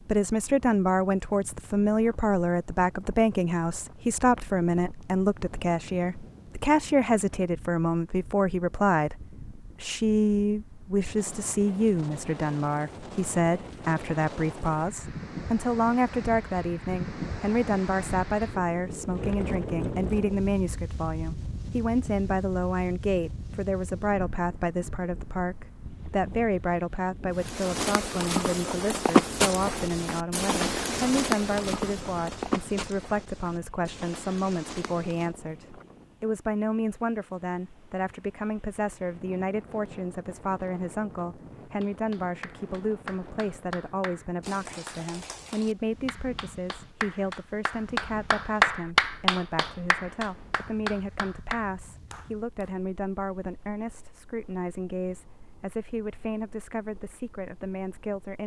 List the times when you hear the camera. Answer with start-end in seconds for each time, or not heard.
not heard.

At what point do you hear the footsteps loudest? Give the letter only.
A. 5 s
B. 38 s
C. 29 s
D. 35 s
C.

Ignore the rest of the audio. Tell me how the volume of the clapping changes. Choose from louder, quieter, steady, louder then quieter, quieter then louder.
louder then quieter.